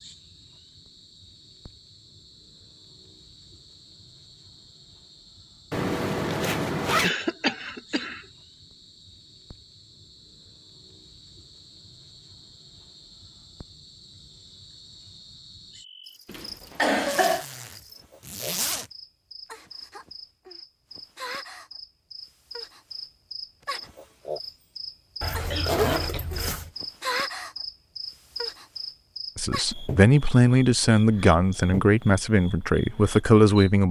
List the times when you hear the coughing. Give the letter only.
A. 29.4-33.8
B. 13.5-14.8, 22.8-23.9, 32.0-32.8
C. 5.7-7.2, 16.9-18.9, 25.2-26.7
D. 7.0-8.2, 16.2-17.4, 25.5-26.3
D.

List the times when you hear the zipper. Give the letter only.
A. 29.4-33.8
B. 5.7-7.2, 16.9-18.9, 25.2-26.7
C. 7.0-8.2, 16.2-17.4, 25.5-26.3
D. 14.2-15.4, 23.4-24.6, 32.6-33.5
B.